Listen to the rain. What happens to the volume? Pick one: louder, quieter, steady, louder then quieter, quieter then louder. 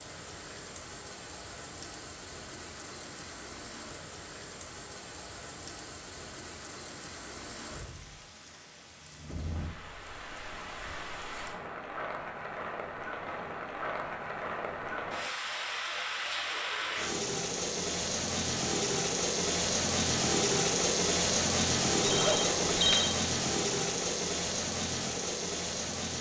louder.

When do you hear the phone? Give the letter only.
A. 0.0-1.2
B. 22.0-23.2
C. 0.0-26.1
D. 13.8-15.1
B.